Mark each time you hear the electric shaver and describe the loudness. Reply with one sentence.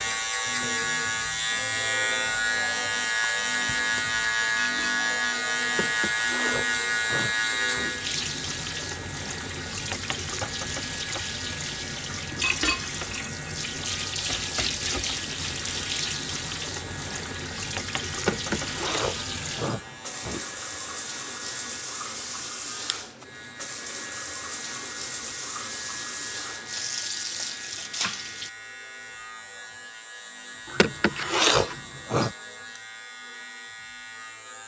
You can hear the electric shaver from 0.0 to 34.6 s, getting quieter.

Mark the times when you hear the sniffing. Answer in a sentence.
The sniffing can be heard from 5.7 to 8.0 s, from 18.1 to 20.4 s and from 30.6 to 32.4 s.